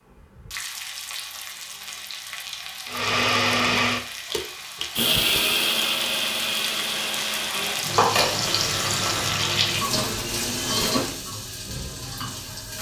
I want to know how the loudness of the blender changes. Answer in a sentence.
The loudness of the blender goes down.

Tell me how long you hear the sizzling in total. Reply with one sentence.
The sizzling can be heard for 13 seconds in total.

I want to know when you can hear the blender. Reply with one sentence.
You can hear the blender from 2.9 to 11.2 s.